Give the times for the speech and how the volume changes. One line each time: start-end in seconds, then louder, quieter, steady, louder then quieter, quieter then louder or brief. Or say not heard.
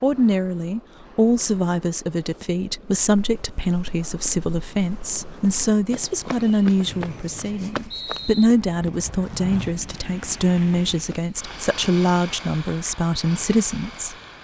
0.0-14.2 steady.